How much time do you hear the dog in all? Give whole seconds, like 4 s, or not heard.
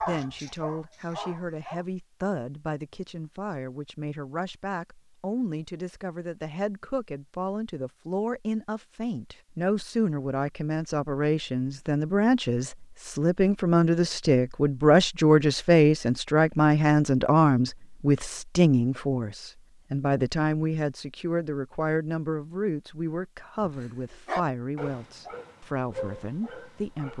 5 s.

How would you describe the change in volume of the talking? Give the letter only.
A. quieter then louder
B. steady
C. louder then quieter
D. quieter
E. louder
C.